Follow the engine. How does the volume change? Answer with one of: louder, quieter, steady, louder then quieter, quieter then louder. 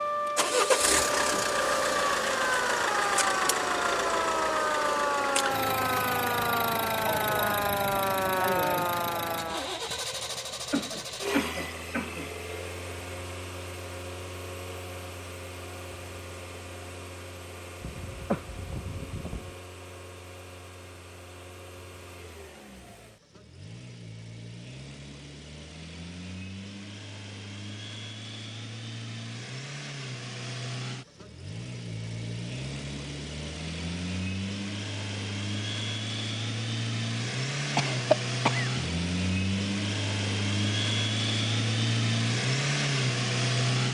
quieter then louder.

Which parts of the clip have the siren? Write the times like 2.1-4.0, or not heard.
0.0-9.6.